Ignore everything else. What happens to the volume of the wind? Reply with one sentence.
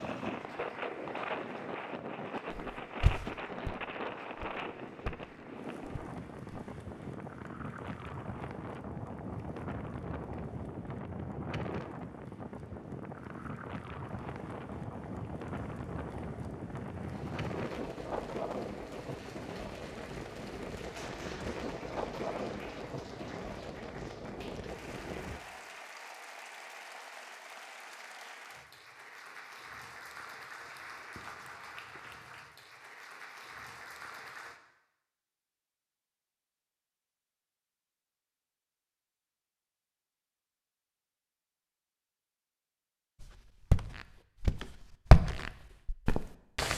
The loudness of the wind stays about the same.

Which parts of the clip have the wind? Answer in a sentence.
The wind can be heard from 0.0 to 25.6 s.